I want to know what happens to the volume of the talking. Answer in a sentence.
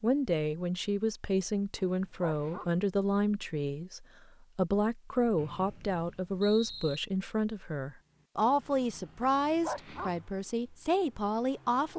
The loudness of the talking stays about the same.